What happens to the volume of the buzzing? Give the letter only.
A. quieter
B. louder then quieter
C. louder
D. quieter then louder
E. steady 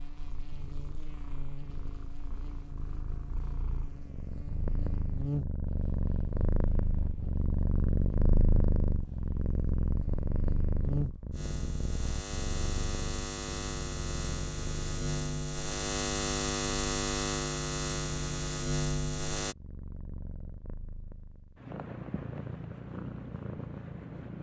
C.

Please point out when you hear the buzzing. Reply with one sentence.
You can hear the buzzing from 0.0 to 19.6 s.